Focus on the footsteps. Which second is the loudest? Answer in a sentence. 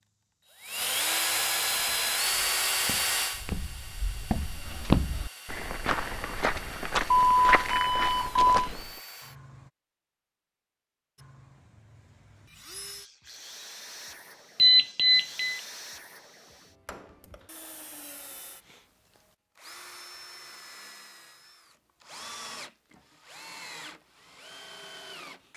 The volume of the footsteps peaks at 5 seconds.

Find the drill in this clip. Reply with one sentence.
You can hear the drill from 0.0 to 9.7 s and from 11.2 to 25.5 s.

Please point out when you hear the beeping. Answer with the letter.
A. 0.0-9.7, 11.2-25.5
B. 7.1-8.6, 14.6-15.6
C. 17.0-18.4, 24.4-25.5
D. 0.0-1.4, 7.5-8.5
B.